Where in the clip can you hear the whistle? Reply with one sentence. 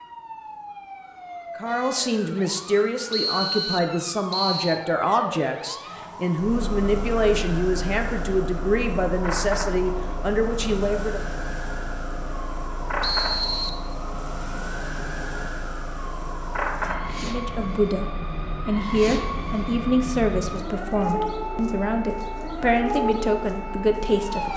The whistle can be heard from 3.1 to 4.8 s and from 13.0 to 13.8 s.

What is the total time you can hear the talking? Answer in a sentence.
The talking can be heard for 17 seconds in total.